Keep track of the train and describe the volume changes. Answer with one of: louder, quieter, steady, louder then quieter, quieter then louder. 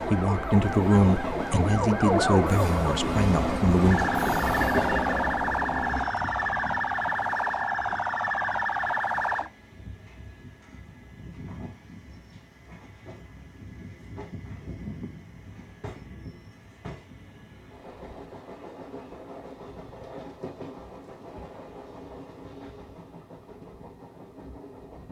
quieter.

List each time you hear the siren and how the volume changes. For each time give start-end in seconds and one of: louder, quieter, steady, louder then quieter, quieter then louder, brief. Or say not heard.
0.0-9.5 steady.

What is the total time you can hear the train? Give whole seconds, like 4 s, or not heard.
25 s.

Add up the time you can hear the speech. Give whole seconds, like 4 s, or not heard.
4 s.